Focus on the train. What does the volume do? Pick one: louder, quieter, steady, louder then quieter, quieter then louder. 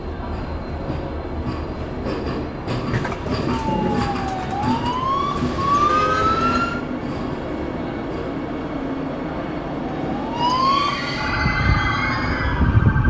steady.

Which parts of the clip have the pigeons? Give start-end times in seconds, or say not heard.
2.9-4.7.